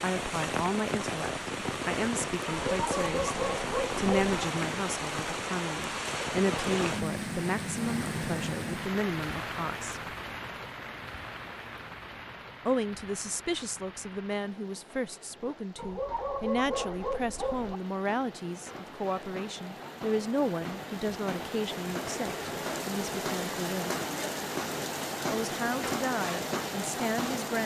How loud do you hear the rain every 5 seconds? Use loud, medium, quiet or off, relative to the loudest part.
loud, loud, medium, quiet, loud, loud.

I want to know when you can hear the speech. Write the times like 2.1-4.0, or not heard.
0.0-10.0, 12.7-23.9, 25.3-27.6.